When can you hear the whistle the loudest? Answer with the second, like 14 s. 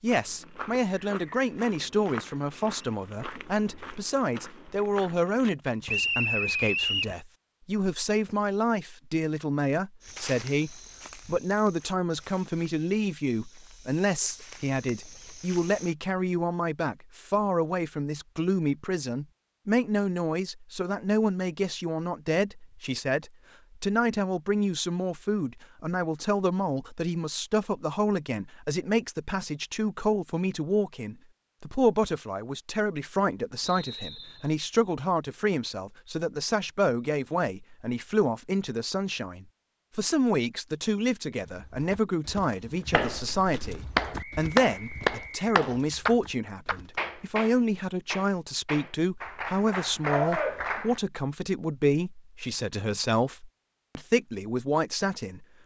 6 s.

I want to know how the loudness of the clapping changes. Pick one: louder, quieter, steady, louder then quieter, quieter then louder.
quieter then louder.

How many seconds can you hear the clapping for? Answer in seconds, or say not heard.
8 s.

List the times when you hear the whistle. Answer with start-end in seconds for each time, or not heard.
5.8-7.2, 33.6-34.5, 44.1-45.5.